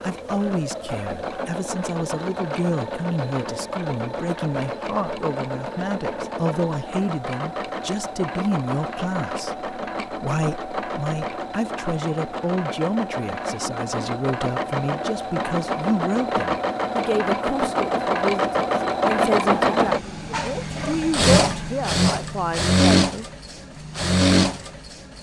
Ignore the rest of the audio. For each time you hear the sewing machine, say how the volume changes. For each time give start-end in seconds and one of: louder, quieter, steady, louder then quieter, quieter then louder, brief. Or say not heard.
0.0-25.1 louder.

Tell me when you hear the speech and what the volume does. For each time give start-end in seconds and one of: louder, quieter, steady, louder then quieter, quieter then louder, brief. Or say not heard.
0.0-23.2 steady.